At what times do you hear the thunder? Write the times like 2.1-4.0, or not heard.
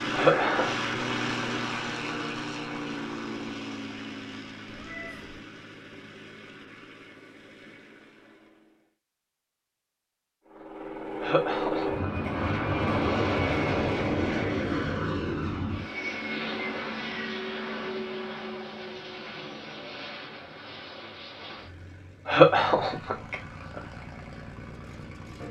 not heard.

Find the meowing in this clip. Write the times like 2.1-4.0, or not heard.
4.7-5.4.